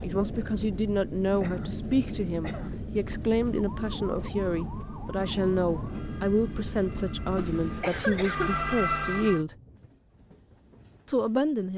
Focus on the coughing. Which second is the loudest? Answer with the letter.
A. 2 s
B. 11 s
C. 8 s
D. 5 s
C.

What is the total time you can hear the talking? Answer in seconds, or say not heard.
10 s.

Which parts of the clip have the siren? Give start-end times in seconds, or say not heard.
3.5-9.4.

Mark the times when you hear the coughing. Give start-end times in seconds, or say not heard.
1.4-2.8, 7.3-8.6.